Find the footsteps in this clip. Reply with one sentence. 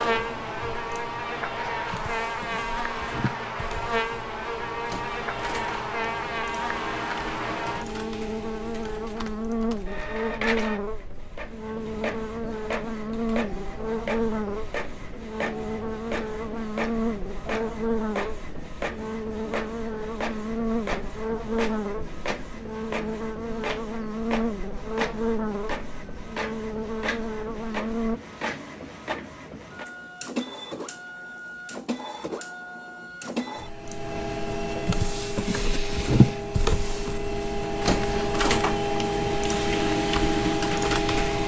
The footsteps can't be heard in this clip.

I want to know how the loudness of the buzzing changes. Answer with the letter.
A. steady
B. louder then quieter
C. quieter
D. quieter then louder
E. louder
A.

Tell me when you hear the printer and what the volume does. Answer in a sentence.
The printer can be heard from 0.0 to 41.4 s, getting louder.